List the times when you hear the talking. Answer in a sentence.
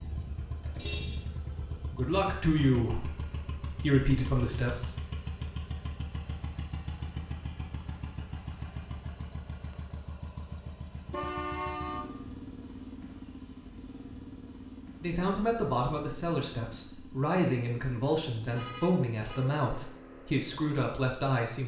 The talking can be heard from 1.9 to 5.0 s and from 15.0 to 21.6 s.